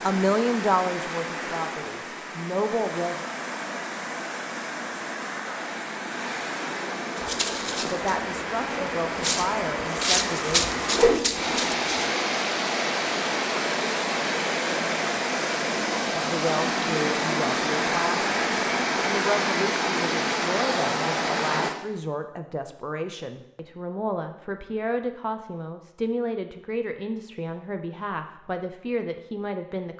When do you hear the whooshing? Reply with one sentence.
The whooshing can be heard from 10.9 to 11.7 s.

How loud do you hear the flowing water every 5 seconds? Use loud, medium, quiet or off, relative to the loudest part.
medium, medium, loud, loud, loud, off.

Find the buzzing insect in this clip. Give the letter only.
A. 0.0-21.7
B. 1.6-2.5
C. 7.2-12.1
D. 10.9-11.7
C.